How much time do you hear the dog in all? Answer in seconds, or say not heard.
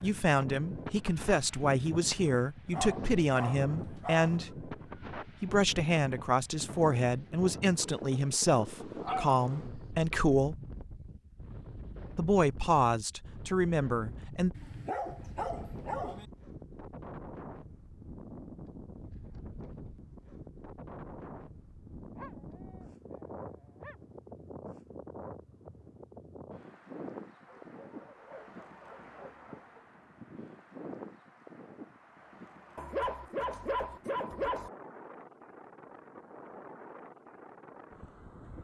10 s.